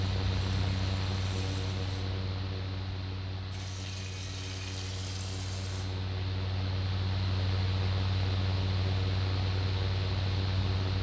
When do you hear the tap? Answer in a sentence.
You can hear the tap from 0.0 to 2.0 s and from 3.5 to 5.8 s.